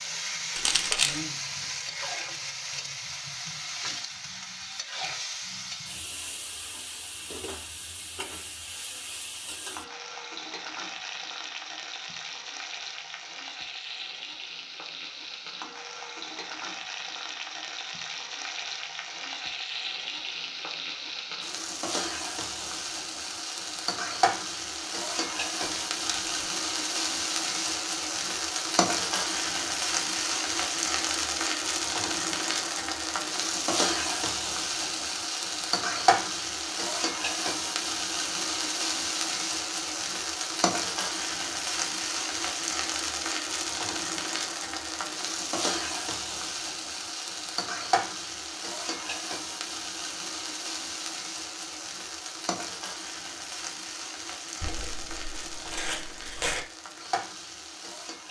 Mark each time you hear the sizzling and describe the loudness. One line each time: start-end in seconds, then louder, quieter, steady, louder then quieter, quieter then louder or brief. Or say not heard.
0.0-58.2 louder then quieter.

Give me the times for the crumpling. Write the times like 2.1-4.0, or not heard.
0.6-1.2, 25.6-26.3, 54.6-56.6.